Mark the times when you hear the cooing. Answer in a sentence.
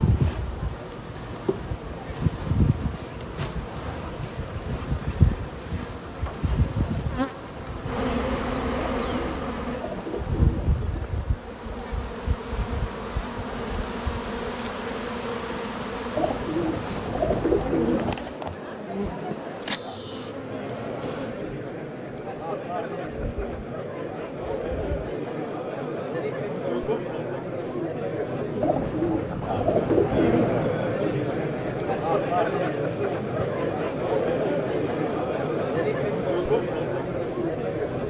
The cooing can be heard from 8.8 to 11.1 s, from 16.1 to 18.2 s and from 28.6 to 30.7 s.